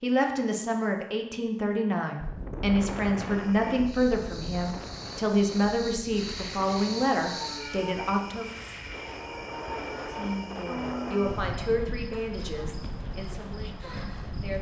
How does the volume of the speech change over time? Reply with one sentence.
The volume of the speech goes down.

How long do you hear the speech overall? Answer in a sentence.
The speech can be heard for 13 seconds in total.